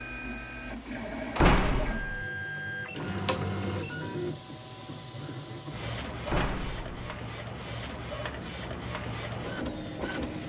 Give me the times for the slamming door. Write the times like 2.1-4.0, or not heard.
1.4-2.2, 6.2-6.9.